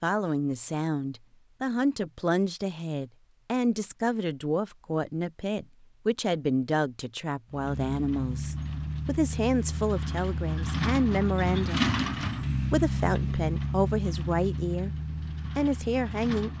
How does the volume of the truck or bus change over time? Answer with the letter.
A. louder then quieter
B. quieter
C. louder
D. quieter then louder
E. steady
A.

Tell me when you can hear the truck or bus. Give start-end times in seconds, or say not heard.
7.5-16.5.